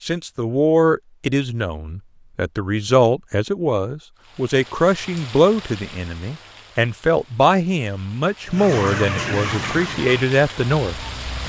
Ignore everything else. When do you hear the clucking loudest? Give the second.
9 s.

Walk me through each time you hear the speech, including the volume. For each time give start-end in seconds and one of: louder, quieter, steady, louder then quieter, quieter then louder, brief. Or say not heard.
0.0-11.1 steady.